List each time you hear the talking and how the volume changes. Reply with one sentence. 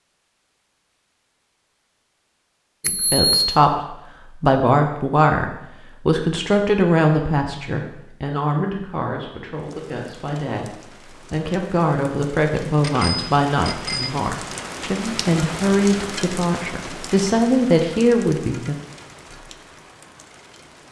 You can hear the talking from 2.9 to 18.8 s, getting quieter then louder.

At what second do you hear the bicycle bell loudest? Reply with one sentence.
The loudest moment of the bicycle bell is at 3 seconds.